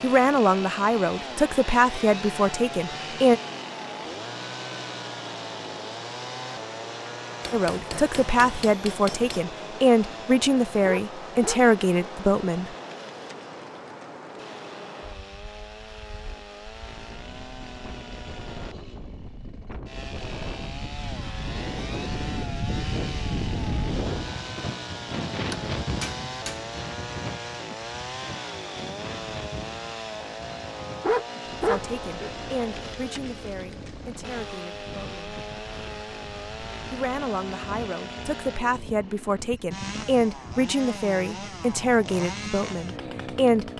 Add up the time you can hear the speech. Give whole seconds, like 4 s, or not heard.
19 s.